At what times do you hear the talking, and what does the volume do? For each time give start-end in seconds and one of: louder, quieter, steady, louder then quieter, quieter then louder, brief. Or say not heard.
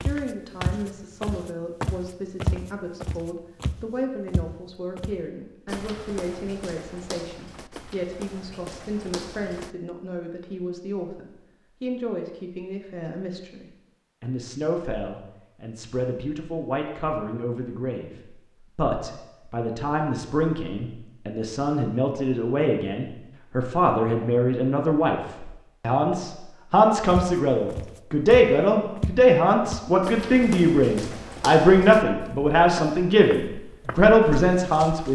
0.0-35.1 louder.